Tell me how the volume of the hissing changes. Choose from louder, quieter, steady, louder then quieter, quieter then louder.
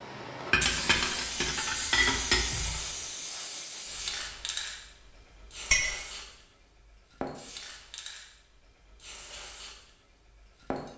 quieter.